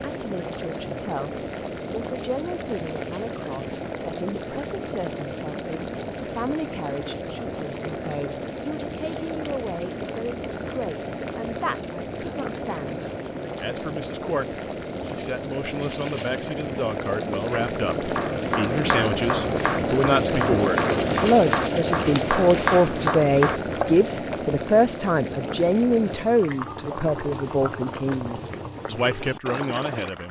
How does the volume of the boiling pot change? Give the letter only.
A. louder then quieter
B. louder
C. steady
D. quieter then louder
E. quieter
A.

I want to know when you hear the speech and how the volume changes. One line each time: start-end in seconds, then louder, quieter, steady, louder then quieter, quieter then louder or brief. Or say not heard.
0.0-30.2 louder.